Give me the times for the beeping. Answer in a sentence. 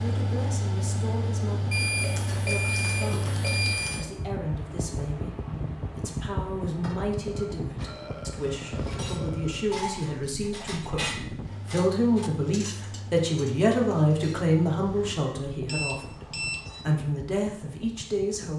You can hear the beeping from 1.7 to 4.0 s and from 15.7 to 16.9 s.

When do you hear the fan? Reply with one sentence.
The fan can be heard from 0.0 to 18.5 s.